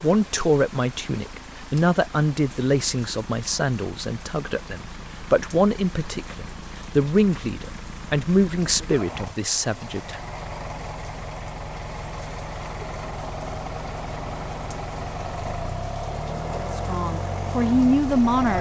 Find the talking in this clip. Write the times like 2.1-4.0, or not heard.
0.0-10.2, 16.6-18.5.